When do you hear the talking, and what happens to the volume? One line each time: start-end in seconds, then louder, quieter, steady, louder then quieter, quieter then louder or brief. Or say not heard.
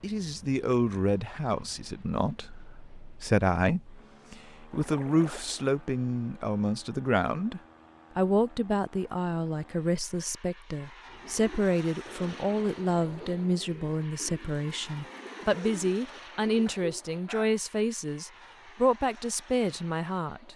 0.0-20.5 steady.